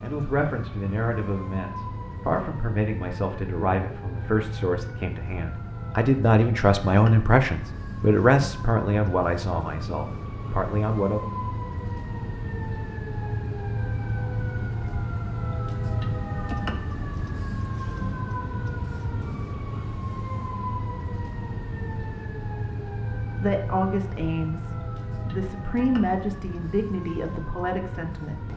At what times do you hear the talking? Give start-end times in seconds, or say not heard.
0.0-11.3, 23.2-28.4.